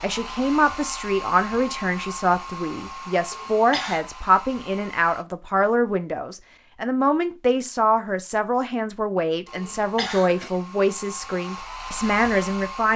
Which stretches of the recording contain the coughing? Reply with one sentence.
You can hear the coughing from 3.3 to 4.0 s and from 9.6 to 10.6 s.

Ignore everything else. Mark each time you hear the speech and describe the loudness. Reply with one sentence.
The speech can be heard from 0.0 to 12.9 s, at a steady volume.